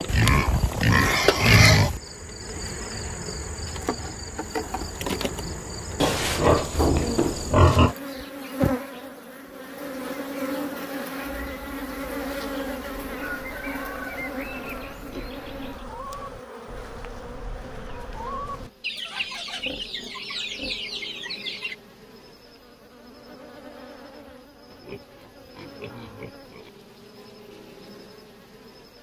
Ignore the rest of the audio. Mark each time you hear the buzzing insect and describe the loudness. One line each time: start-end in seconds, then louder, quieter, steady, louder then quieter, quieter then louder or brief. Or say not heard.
0.0-28.9 quieter.